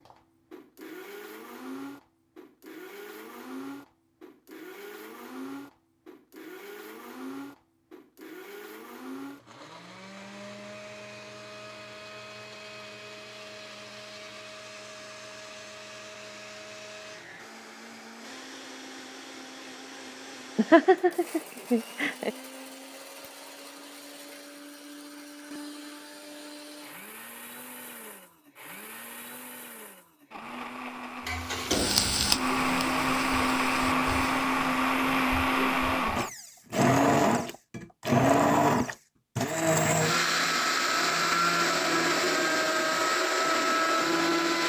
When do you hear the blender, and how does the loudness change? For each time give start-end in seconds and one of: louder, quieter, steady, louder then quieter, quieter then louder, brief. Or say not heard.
0.0-44.6 louder.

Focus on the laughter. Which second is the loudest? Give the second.
21 s.